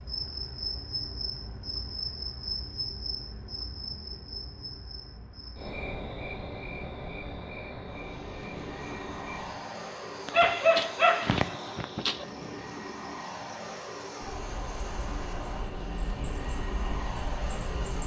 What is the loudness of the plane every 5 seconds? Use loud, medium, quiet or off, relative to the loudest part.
quiet, loud, loud, loud.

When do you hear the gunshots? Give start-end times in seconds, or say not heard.
not heard.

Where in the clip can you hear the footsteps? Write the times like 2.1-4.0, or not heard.
not heard.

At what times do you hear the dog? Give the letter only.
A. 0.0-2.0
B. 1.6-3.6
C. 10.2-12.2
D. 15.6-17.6
C.